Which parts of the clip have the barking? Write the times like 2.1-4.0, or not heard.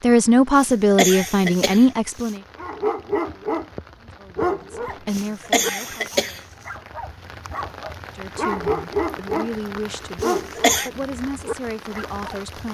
2.5-3.7, 4.3-9.5, 10.2-12.3.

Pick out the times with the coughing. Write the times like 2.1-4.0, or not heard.
0.6-2.3, 5.1-6.4, 10.2-10.9.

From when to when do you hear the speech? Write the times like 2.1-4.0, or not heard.
0.0-2.4, 4.0-6.5, 8.2-12.6.